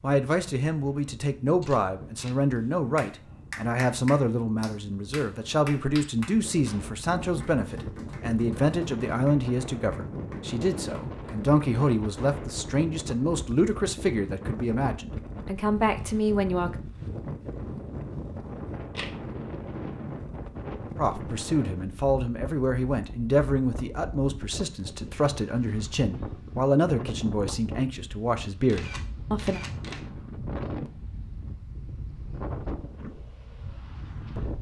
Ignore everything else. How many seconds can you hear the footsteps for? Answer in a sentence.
You can't hear the footsteps here.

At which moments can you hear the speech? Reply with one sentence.
You can hear the speech from 0.0 to 16.8 s and from 20.9 to 29.6 s.